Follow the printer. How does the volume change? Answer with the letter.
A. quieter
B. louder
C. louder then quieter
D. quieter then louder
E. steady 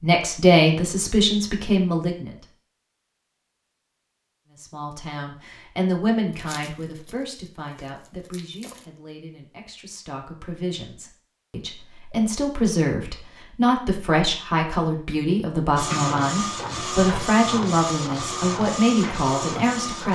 E.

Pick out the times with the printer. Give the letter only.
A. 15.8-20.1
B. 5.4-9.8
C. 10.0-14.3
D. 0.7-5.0
A.